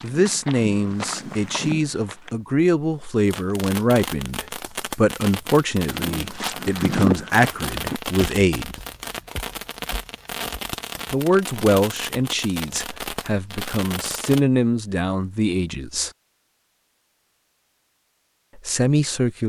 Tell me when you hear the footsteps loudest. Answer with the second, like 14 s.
7 s.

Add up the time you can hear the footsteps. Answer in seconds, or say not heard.
8 s.